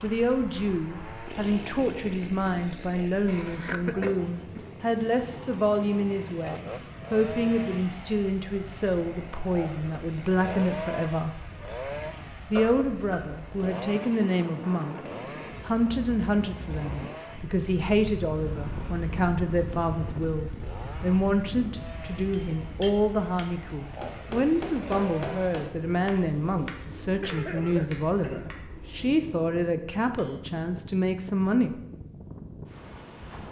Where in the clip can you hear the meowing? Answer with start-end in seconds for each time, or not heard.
not heard.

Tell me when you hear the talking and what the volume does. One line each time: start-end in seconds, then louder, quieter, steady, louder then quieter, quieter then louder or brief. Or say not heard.
0.0-11.4 steady
12.5-31.8 steady.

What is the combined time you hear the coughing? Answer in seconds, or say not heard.
4 s.